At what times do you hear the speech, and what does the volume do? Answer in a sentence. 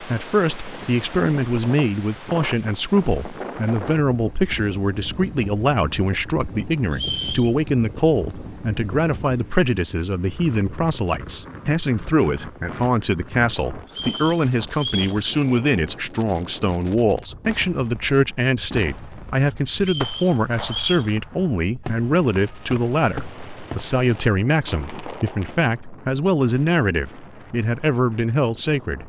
You can hear the speech from 0.0 to 29.0 s, at a steady volume.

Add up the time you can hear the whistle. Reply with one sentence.
The whistle can be heard for 3 seconds in total.